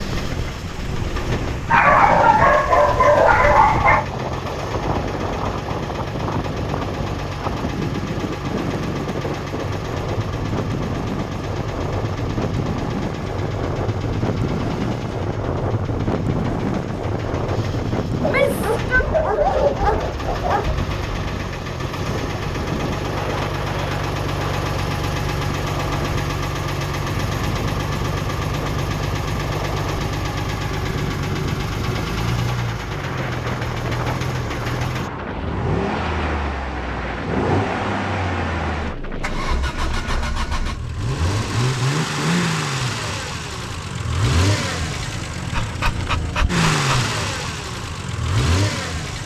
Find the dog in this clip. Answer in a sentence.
The dog can be heard from 1.7 to 4.0 s, from 18.4 to 20.8 s and from 45.5 to 47.1 s.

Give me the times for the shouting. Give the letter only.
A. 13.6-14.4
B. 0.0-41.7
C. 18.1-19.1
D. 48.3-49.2
C.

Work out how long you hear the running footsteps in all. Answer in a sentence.
You can't hear the running footsteps here.